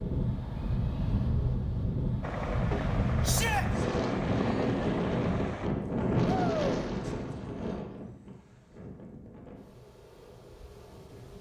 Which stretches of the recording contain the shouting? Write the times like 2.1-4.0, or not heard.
3.2-3.6, 6.2-6.8.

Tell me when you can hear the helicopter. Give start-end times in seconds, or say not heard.
2.2-5.7.